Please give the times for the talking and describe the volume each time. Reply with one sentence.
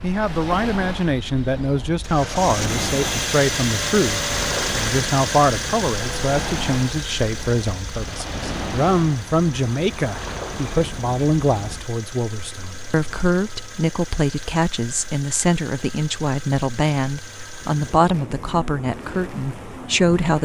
You can hear the talking from 0.0 to 20.3 s, at a steady volume.